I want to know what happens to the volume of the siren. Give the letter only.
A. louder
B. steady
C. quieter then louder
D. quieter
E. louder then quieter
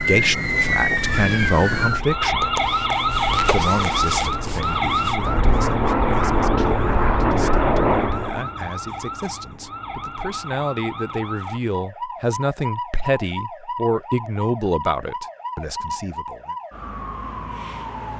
D.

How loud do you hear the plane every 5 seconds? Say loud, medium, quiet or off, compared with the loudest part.
quiet, loud, off, off.